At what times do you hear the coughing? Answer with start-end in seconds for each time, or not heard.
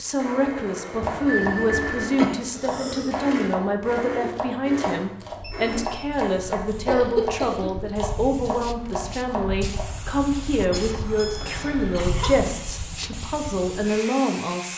1.0-3.1, 6.8-7.7, 10.5-12.5.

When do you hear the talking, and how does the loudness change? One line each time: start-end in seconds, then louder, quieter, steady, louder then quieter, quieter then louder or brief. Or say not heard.
0.0-14.7 steady.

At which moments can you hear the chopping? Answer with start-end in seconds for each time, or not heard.
1.0-9.9.